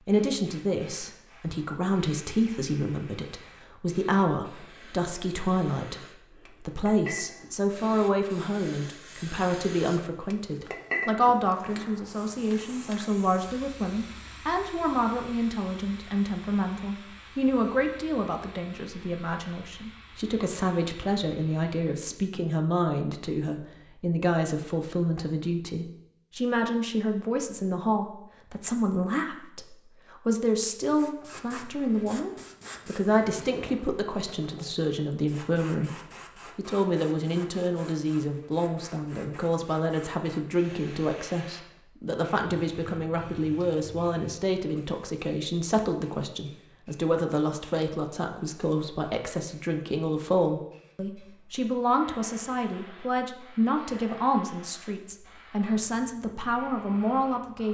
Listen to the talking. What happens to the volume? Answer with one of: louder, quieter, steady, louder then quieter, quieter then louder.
steady.